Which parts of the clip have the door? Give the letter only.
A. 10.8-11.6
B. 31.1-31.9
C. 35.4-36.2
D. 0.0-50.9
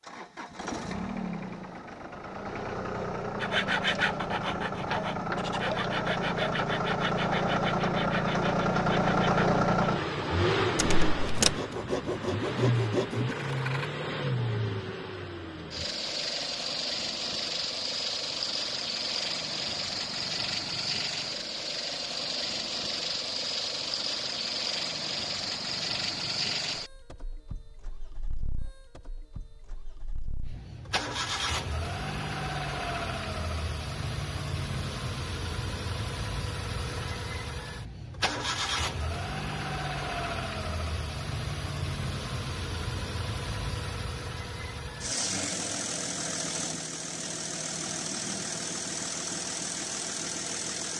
A.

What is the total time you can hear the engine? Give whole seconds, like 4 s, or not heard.
51 s.